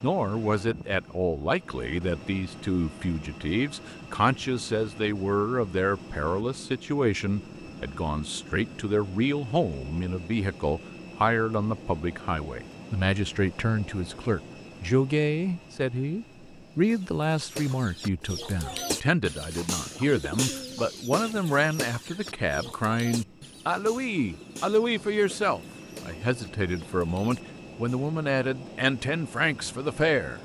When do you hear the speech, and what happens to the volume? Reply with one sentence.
You can hear the speech from 0.0 to 30.3 s, at a steady volume.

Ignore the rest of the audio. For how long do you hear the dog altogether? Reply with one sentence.
The dog can't be heard in this clip.